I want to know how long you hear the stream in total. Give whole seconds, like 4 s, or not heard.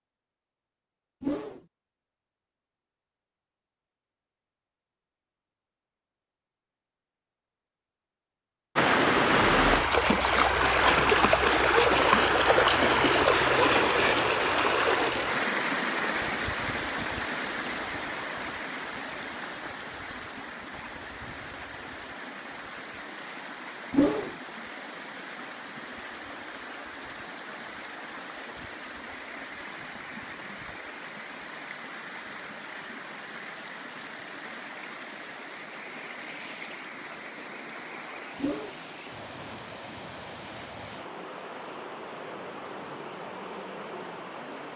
36 s.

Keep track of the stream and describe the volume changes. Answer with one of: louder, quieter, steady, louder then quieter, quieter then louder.
quieter.